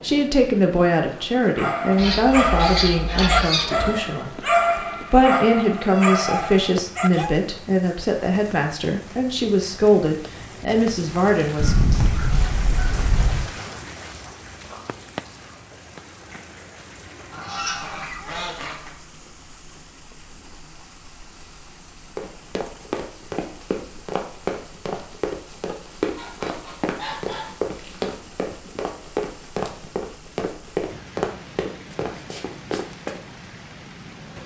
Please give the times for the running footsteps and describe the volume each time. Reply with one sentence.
You can hear the running footsteps from 22.1 to 33.2 s, at a steady volume.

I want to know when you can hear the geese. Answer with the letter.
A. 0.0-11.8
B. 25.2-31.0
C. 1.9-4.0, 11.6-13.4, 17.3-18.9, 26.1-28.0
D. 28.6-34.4
C.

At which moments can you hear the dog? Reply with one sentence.
The dog can be heard from 1.6 to 7.3 s.